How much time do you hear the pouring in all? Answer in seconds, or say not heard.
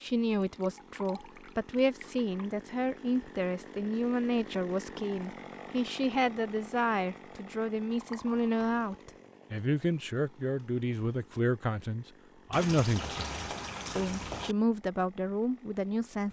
5 s.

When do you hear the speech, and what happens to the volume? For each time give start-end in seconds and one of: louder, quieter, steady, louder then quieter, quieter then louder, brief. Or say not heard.
0.0-16.2 steady.